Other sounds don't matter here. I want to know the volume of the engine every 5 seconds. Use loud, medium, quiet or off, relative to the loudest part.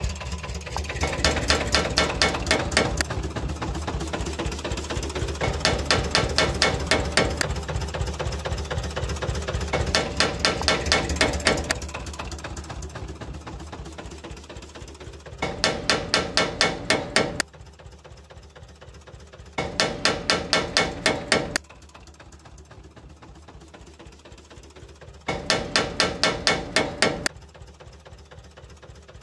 loud, loud, medium, quiet, quiet, quiet.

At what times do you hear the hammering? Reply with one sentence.
The hammering can be heard from 1.0 to 3.0 s, from 5.4 to 7.5 s, from 9.7 to 11.8 s, from 15.4 to 17.4 s, from 19.6 to 21.6 s and from 25.2 to 27.3 s.